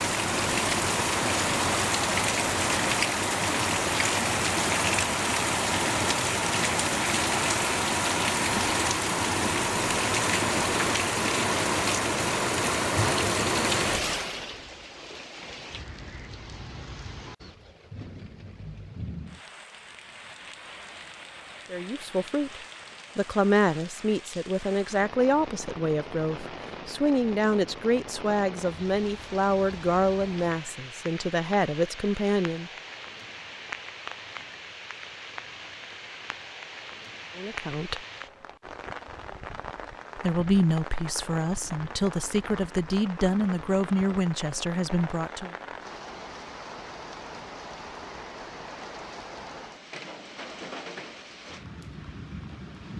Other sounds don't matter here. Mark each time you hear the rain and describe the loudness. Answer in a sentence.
The rain can be heard from 0.0 to 52.9 s, getting quieter.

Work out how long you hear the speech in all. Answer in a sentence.
The speech can be heard for 17 seconds in total.